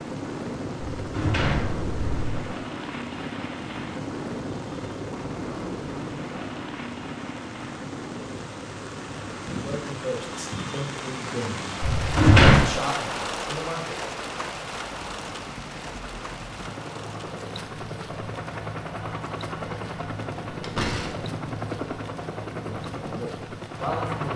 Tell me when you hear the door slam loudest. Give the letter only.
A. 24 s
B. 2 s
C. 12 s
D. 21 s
C.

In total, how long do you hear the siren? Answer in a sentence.
You can't hear the siren here.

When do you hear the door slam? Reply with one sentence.
You can hear the door slam from 0.9 to 2.4 s, from 11.8 to 12.7 s and from 20.5 to 21.1 s.